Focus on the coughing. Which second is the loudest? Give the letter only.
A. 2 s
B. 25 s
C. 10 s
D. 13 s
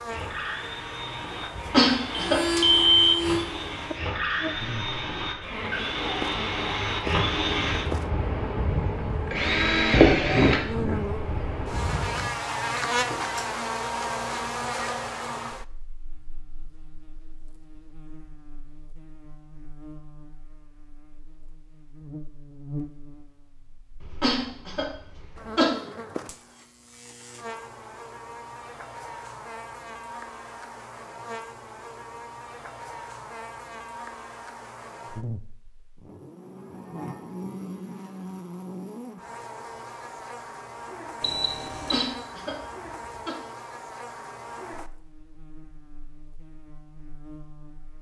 A.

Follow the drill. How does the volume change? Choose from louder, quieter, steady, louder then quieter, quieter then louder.
louder.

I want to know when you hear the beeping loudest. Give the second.
3 s.